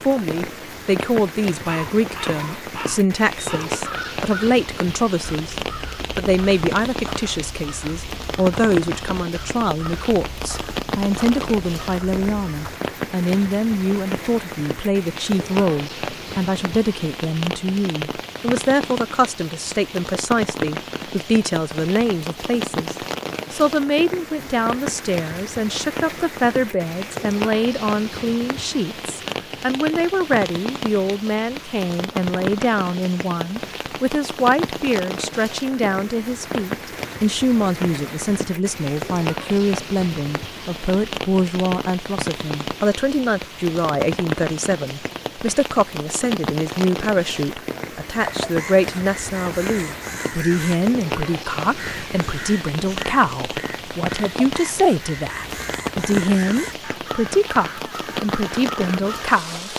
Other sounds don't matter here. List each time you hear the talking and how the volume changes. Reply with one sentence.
The talking can be heard from 0.1 to 59.7 s, at a steady volume.